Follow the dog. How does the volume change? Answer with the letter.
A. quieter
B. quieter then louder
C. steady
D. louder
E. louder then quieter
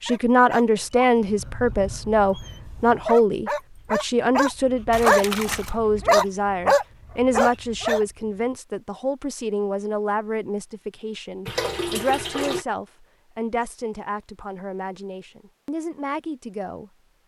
D.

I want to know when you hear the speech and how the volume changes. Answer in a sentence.
The speech can be heard from 0.0 to 16.9 s, getting quieter.